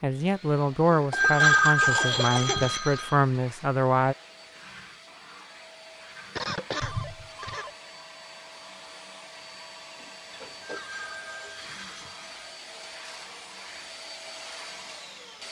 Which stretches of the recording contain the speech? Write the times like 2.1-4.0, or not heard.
0.0-4.2.